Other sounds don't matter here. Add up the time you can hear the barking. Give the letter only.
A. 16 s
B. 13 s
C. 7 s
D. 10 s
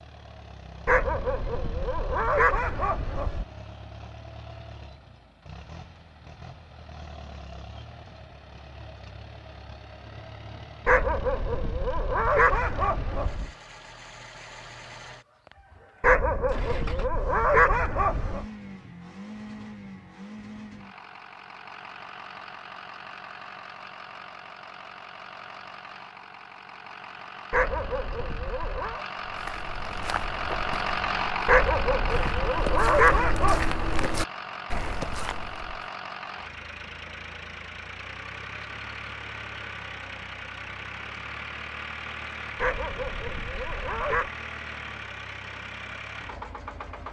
B.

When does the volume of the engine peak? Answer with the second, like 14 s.
31 s.